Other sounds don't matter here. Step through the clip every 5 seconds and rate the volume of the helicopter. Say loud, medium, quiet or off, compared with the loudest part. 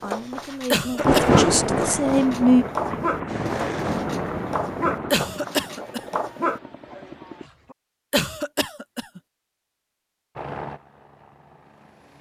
loud, medium, medium.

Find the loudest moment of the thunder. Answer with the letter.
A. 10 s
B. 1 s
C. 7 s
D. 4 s
B.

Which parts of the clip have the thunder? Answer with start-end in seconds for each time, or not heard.
0.9-5.2.